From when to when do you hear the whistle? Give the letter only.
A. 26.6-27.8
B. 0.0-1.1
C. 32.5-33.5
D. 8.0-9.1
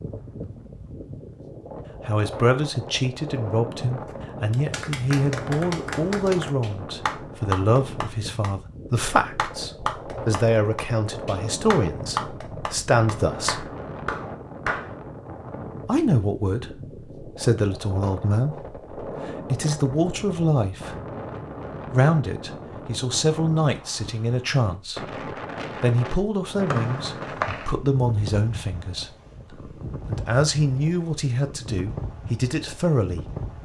A.